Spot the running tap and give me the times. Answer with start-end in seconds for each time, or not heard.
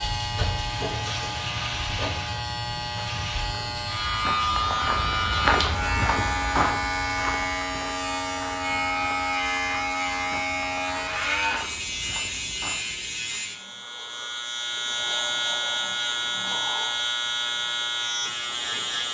not heard.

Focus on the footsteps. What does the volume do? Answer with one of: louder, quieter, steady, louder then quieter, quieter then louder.
quieter.